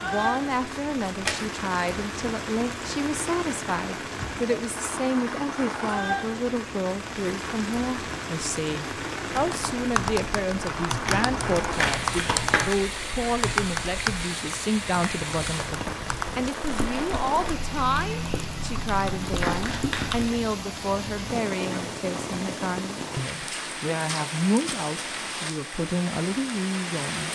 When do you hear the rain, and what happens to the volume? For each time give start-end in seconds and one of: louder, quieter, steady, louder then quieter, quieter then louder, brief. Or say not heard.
0.0-27.3 steady.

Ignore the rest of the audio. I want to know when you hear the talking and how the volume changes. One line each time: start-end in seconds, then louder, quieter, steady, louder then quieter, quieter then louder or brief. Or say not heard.
0.0-27.3 steady.